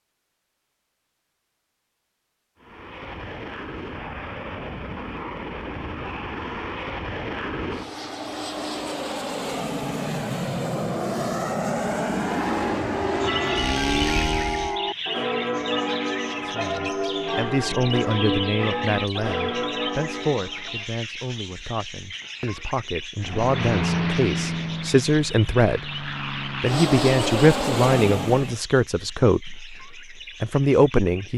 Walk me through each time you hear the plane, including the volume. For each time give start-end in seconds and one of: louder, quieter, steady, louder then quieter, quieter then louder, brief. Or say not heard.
2.5-14.8 louder
23.2-28.6 quieter then louder.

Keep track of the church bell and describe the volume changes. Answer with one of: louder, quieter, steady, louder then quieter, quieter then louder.
steady.